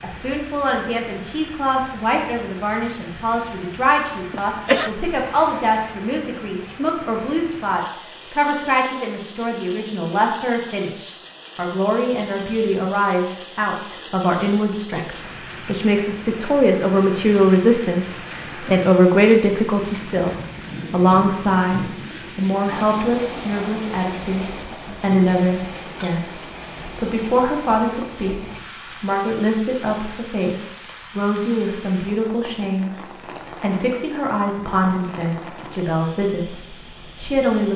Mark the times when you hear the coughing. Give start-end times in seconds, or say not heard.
3.9-4.9.